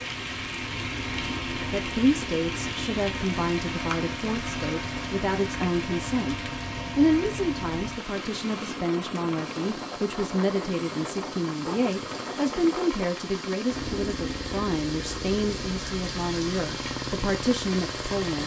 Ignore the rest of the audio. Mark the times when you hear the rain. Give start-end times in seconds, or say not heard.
0.0-18.4.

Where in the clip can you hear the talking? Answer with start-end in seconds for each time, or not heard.
1.7-18.4.